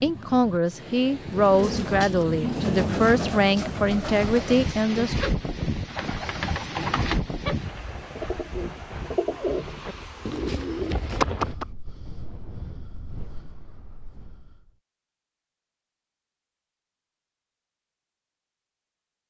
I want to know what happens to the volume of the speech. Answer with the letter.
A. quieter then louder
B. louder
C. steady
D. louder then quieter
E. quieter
C.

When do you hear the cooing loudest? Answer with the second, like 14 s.
11 s.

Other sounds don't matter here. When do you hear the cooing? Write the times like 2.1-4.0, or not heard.
1.3-11.7.